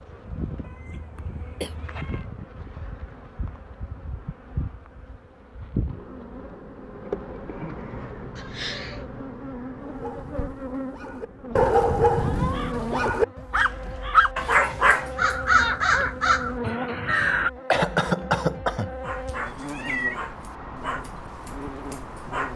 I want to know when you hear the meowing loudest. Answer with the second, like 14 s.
20 s.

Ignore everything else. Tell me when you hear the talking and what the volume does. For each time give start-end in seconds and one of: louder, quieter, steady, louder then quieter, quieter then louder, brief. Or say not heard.
not heard.